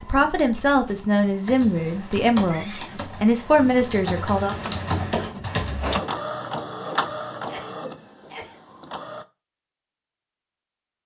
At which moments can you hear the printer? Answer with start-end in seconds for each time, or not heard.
0.0-9.2.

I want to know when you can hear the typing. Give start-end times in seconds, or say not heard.
1.4-6.2.